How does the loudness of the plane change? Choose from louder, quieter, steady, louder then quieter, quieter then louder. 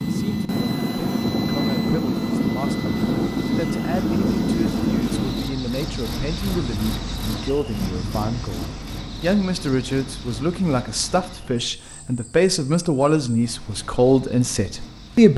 steady.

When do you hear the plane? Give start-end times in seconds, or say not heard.
0.0-5.5.